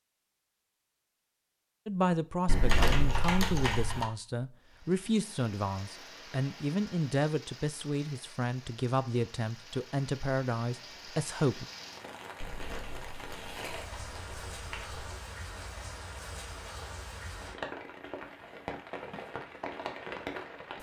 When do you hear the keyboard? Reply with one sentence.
You can hear the keyboard from 2.5 to 4.1 s and from 12.4 to 15.2 s.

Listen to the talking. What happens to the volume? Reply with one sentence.
The volume of the talking stays about the same.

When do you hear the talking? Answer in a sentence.
The talking can be heard from 1.9 to 11.7 s.